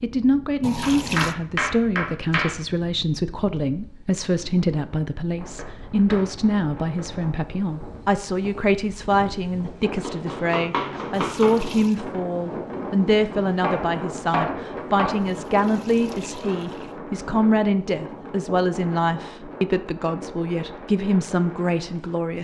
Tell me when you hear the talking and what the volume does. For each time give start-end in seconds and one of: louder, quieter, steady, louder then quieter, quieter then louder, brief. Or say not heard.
0.0-22.3 steady.